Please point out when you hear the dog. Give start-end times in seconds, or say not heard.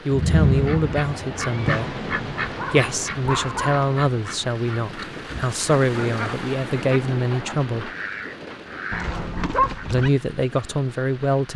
2.5-3.9, 8.9-10.1.